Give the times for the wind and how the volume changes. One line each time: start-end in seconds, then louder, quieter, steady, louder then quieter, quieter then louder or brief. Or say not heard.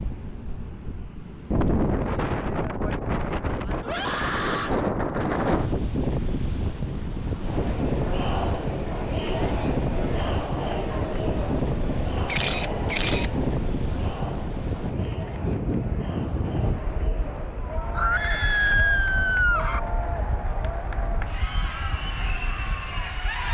0.0-23.4 quieter.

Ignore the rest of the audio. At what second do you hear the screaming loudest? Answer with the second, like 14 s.
19 s.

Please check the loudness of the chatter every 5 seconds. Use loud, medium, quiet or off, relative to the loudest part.
off, loud, loud, medium, loud.